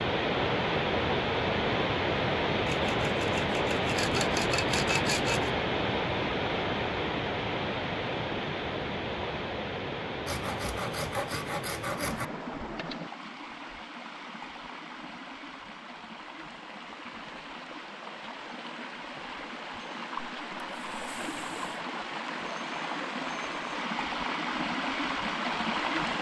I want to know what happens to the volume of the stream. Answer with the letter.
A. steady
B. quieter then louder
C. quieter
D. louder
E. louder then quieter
B.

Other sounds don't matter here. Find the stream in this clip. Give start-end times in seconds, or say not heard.
0.0-26.1.